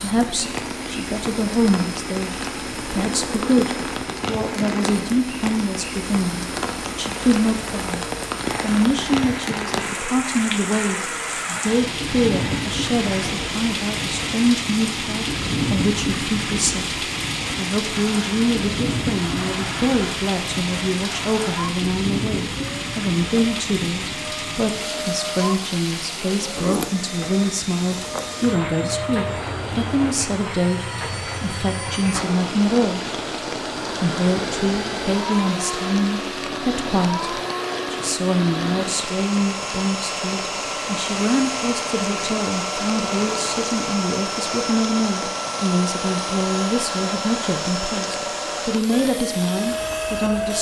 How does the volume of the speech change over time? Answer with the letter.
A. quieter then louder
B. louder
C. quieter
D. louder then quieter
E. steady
E.